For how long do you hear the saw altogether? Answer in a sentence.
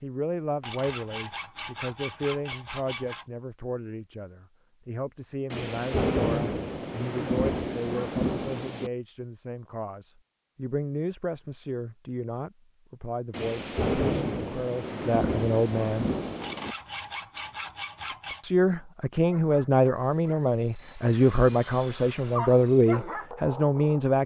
The saw can be heard for 5 seconds in total.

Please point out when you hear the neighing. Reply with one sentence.
You can't hear the neighing here.